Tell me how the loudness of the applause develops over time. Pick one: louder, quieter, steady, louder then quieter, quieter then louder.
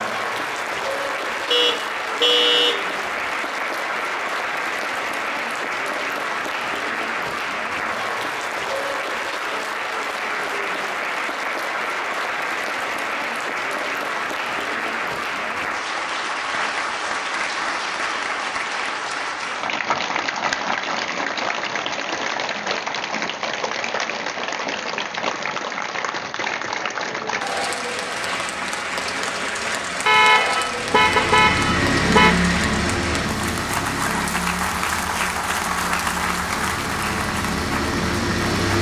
steady.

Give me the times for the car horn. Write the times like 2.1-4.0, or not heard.
1.5-3.2, 30.1-32.4.